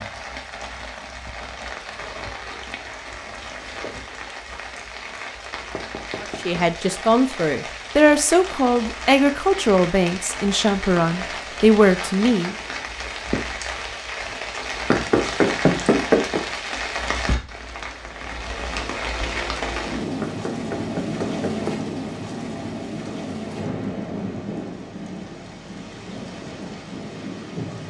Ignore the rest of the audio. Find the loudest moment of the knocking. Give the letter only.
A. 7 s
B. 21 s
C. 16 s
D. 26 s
C.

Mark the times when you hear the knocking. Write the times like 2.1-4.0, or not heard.
5.7-6.7, 14.9-16.4, 20.2-21.9.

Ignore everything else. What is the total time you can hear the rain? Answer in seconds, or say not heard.
28 s.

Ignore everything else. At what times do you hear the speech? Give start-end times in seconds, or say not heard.
6.2-12.6.